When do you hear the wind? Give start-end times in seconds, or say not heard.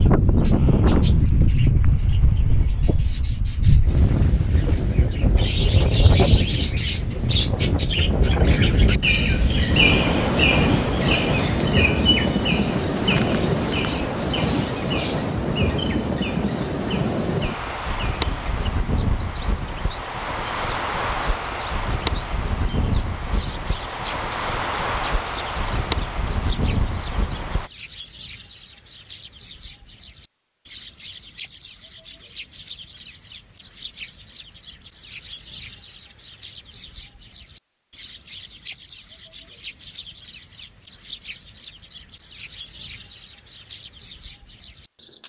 0.0-27.7.